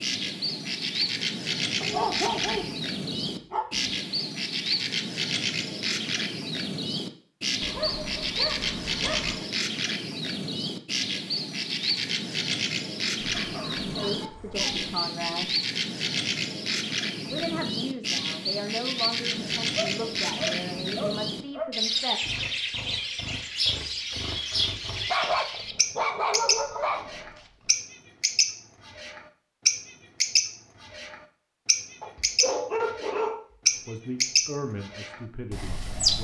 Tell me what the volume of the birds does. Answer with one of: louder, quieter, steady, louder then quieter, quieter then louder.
steady.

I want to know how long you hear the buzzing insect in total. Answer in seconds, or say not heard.
not heard.